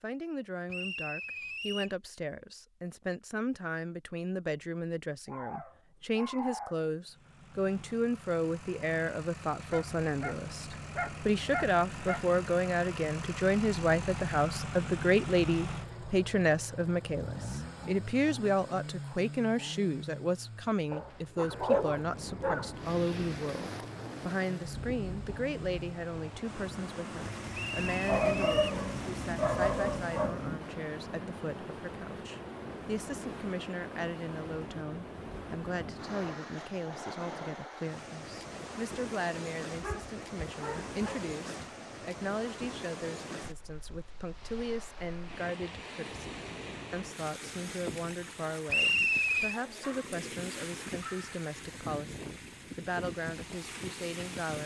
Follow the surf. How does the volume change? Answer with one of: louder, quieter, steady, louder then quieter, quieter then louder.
steady.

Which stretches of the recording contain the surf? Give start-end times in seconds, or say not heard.
21.9-54.6.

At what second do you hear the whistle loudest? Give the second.
49 s.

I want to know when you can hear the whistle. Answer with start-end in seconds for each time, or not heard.
0.7-1.9, 27.6-28.8, 48.6-49.6.